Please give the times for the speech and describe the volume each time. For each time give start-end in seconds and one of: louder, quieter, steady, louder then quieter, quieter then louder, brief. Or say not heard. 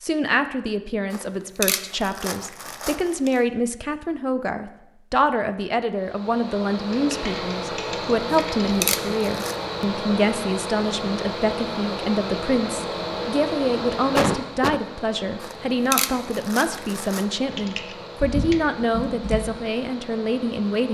0.0-20.8 steady.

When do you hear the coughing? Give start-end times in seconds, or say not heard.
14.2-14.8.